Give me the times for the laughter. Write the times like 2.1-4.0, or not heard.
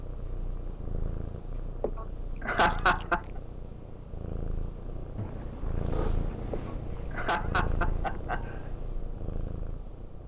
1.8-3.2, 6.5-8.4.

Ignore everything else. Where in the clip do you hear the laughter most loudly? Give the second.
3 s.